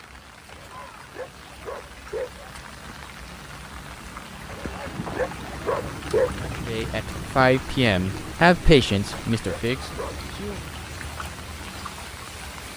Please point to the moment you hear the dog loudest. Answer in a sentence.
The loudest moment of the dog is at 6 seconds.